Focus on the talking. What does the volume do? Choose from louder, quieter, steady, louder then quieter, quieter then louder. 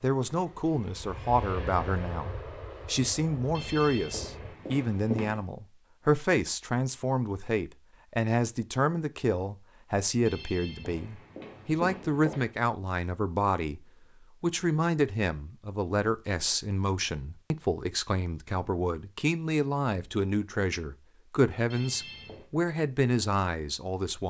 steady.